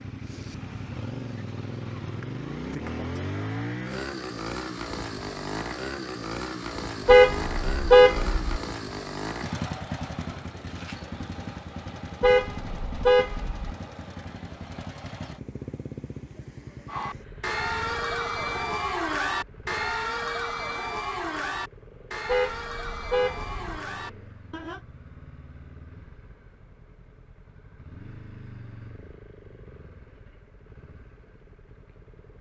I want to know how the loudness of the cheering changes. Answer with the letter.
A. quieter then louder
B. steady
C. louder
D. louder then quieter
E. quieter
E.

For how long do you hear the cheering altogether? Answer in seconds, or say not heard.
8 s.